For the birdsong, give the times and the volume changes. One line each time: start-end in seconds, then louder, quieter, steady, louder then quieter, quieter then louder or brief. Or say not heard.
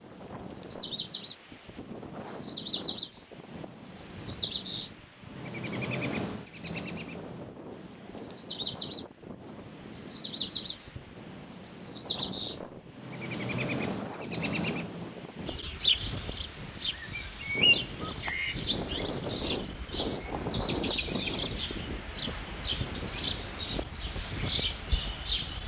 0.0-25.6 steady.